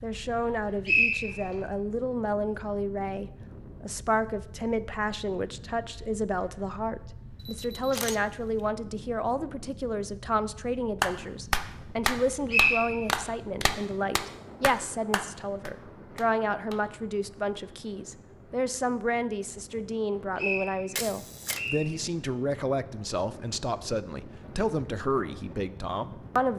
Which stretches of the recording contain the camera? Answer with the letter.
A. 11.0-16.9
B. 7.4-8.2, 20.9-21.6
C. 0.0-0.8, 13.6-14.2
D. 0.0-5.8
B.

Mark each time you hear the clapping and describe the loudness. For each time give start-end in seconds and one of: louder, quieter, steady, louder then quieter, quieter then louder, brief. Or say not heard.
11.0-16.9 quieter.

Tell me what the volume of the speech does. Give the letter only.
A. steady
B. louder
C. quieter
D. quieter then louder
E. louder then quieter
A.